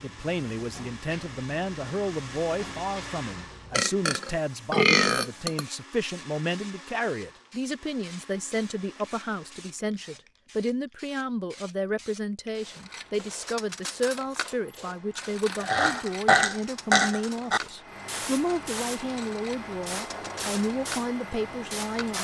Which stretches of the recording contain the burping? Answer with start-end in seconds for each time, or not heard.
3.7-5.7, 15.6-17.6.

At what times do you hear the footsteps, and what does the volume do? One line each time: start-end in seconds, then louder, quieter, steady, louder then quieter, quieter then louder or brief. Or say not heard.
not heard.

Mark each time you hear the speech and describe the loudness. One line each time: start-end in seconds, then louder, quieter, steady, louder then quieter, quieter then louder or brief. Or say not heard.
0.0-22.1 steady.